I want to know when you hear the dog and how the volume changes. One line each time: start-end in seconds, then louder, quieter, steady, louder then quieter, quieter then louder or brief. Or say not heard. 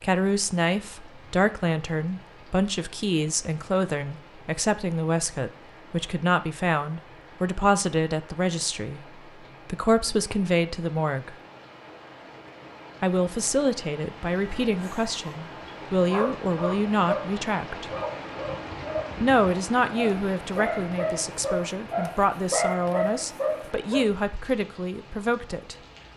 14.4-24.1 louder.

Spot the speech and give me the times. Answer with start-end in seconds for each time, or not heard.
0.0-11.3, 13.0-17.9, 19.2-25.8.